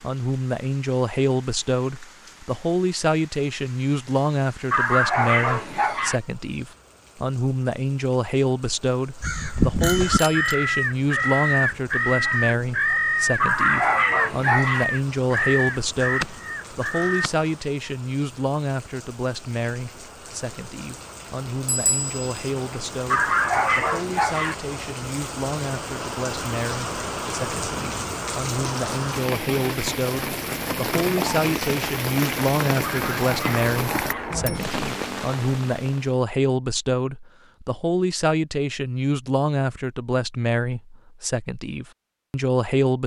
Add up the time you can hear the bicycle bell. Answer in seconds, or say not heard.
3 s.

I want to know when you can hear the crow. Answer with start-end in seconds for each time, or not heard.
9.2-17.3.